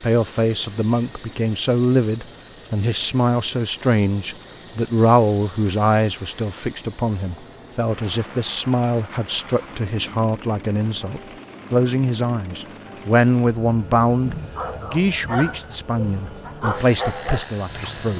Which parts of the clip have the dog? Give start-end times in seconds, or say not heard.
14.6-18.1.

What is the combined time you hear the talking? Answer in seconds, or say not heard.
18 s.